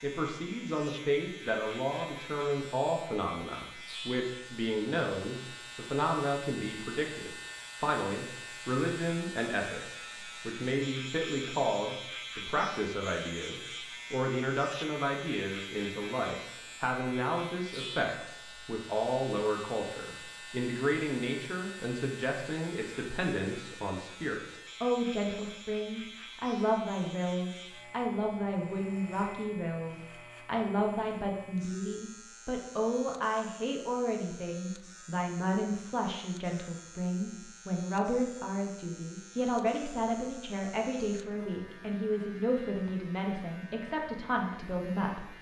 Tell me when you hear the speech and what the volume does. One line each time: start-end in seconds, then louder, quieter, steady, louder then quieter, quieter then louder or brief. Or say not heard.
0.0-45.3 steady.